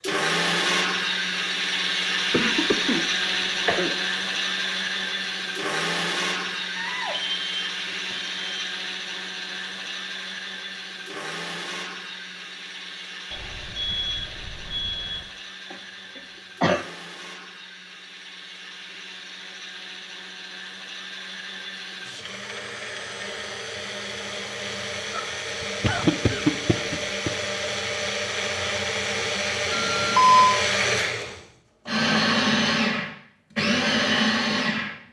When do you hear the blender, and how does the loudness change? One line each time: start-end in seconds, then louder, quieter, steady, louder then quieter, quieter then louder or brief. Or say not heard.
0.0-35.0 quieter then louder.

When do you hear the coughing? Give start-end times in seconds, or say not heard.
2.3-4.0, 15.7-16.9, 25.1-27.3.